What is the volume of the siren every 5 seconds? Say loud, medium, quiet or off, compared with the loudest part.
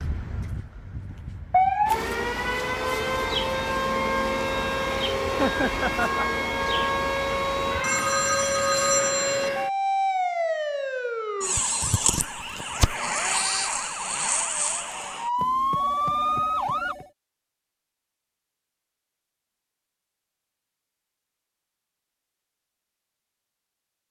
loud, loud, loud, loud, off.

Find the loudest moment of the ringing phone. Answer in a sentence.
The volume of the ringing phone peaks at 9 seconds.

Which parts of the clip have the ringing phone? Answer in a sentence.
The ringing phone can be heard from 7.8 to 9.5 s and from 15.3 to 17.1 s.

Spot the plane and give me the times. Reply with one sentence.
You can't hear the plane here.